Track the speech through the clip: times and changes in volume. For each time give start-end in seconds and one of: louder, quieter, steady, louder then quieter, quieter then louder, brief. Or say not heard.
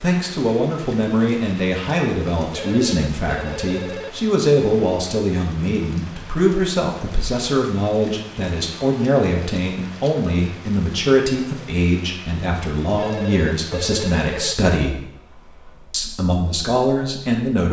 0.0-14.9 steady
15.9-17.6 brief.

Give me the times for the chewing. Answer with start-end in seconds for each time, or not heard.
not heard.